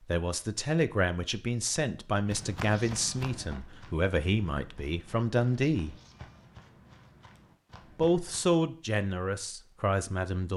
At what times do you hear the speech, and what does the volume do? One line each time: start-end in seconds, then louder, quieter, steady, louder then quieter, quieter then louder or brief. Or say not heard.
0.1-6.0 steady
8.0-10.5 brief.